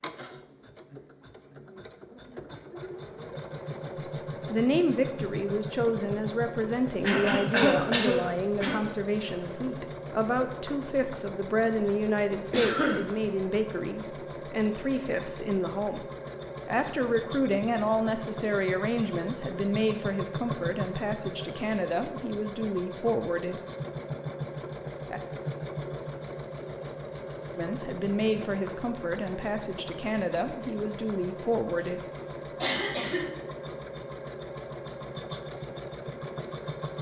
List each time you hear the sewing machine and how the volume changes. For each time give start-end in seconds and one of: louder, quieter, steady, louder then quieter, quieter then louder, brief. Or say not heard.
0.0-36.9 steady.